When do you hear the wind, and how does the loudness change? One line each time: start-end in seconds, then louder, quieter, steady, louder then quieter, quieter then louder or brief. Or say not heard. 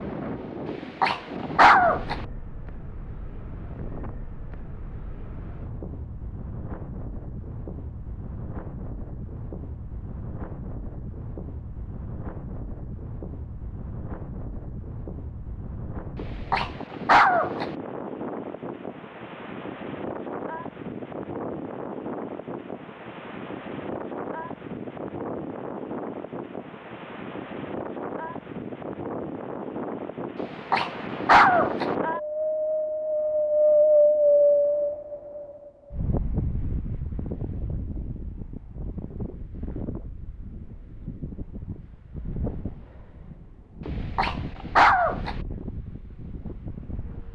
0.0-47.3 louder then quieter.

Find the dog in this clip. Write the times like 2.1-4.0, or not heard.
0.7-2.1, 16.1-17.6, 30.4-31.9, 43.9-45.4.